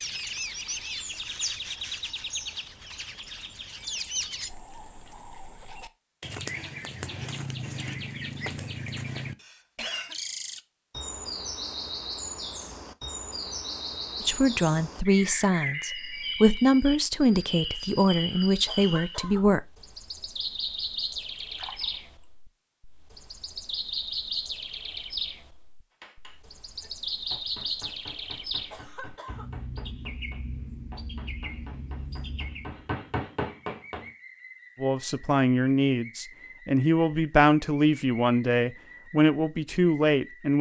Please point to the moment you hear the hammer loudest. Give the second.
33 s.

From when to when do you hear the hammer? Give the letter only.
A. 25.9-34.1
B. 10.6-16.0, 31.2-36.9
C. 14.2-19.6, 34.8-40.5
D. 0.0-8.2
A.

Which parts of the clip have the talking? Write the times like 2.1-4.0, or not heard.
14.2-19.6, 34.8-40.5.